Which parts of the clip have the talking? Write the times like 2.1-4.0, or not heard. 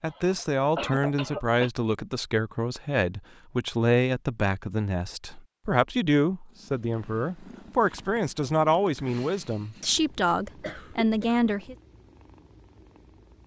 0.0-11.8.